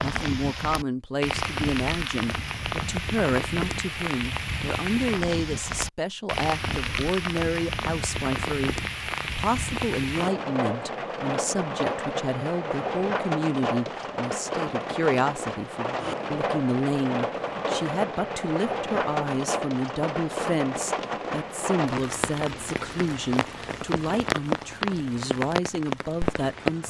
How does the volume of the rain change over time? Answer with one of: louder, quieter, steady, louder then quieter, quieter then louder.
steady.